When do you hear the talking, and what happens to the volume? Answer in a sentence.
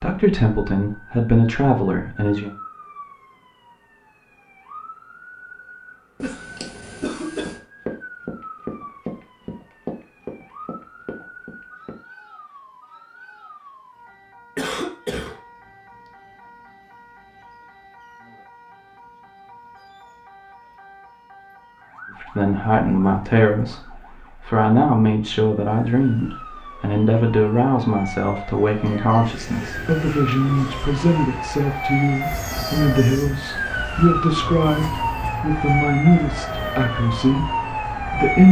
The talking can be heard briefly from 0.0 to 2.5 s; and from 22.2 to 38.4 s, at a steady volume.